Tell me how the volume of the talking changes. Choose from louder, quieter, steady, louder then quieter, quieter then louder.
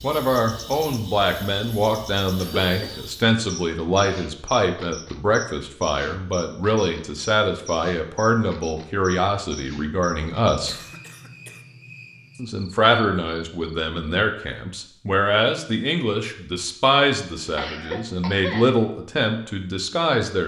steady.